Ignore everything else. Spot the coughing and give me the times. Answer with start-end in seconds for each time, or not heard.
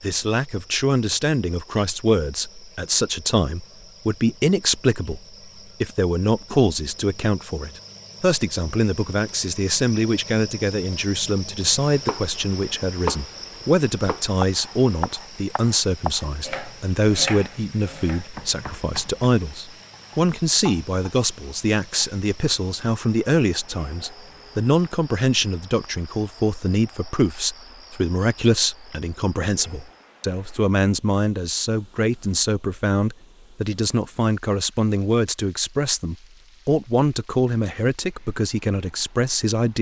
not heard.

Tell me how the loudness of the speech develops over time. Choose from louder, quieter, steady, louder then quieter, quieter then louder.
steady.